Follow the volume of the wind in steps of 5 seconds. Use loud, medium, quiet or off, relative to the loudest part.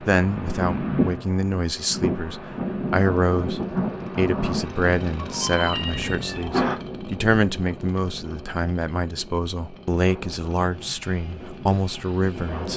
loud, medium, medium.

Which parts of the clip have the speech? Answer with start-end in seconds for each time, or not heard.
0.0-12.7.